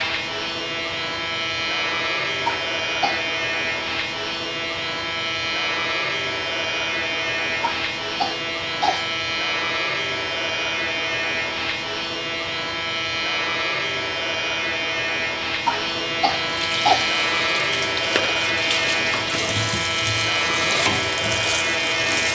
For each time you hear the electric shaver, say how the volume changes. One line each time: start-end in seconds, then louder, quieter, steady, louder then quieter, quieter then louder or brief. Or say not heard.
0.0-22.3 steady.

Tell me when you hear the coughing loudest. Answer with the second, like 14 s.
17 s.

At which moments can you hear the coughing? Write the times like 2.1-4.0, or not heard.
2.5-3.2, 7.6-9.1, 15.7-17.1.